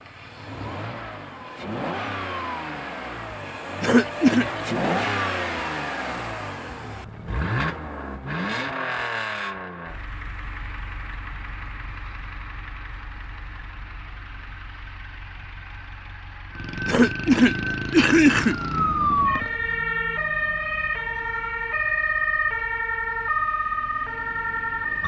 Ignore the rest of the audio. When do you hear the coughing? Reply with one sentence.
The coughing can be heard from 3.8 to 4.5 s and from 16.9 to 18.6 s.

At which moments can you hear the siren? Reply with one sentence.
You can hear the siren from 16.5 to 25.0 s.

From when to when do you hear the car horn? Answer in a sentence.
You can't hear the car horn here.